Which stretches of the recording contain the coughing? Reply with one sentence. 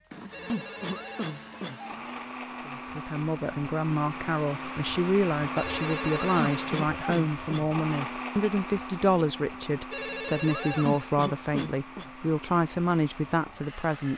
You can hear the coughing from 0.5 to 1.8 s, from 6.3 to 7.7 s and from 10.8 to 12.1 s.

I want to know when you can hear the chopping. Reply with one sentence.
You can't hear the chopping here.